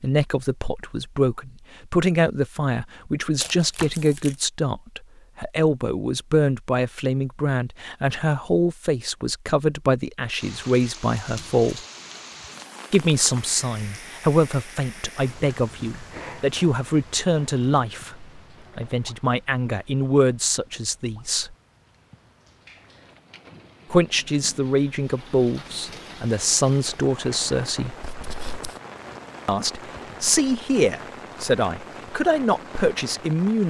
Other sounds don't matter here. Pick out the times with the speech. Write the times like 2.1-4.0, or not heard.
0.0-11.8, 12.9-21.6, 23.9-27.9, 29.4-33.6.